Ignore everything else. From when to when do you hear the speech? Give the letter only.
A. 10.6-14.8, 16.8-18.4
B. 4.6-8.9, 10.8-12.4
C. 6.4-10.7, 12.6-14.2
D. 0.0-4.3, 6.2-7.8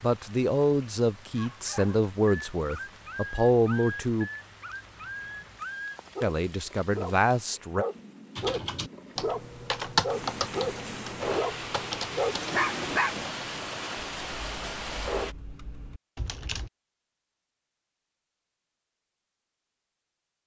D.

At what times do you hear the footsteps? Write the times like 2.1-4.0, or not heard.
not heard.